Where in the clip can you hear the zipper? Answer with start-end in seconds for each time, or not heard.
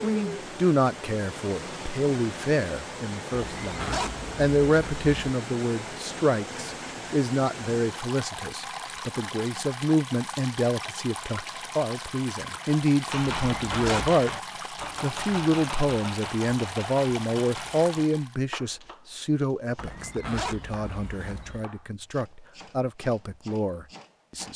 3.3-5.3, 13.3-14.2, 19.8-21.6.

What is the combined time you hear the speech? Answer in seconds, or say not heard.
24 s.